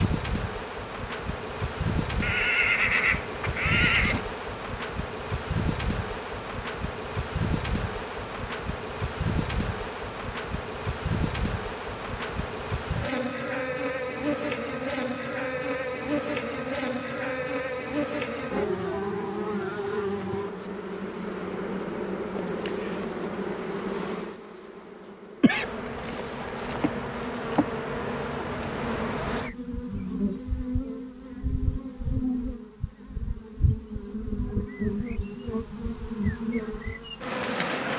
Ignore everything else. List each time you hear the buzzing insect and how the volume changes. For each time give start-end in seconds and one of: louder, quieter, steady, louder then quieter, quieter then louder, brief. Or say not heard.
0.0-37.9 steady.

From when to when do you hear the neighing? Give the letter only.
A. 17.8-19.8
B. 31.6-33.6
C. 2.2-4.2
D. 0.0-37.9
C.